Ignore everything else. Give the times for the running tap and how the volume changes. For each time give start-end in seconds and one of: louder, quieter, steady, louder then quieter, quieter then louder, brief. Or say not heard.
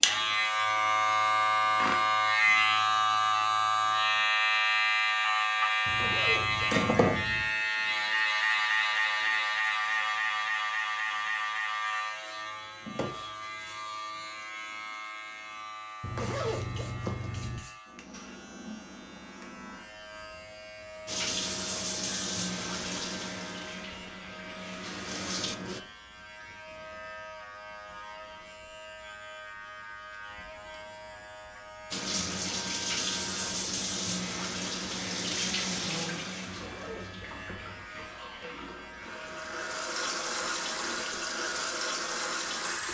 21.1-25.8 quieter then louder
31.9-42.8 quieter then louder.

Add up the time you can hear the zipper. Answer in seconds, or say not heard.
5 s.